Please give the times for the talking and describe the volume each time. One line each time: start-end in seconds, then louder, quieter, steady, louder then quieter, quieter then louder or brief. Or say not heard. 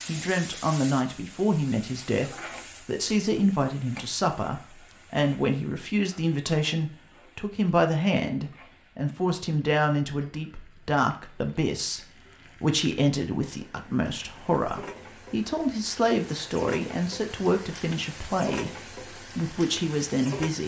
0.1-20.6 steady.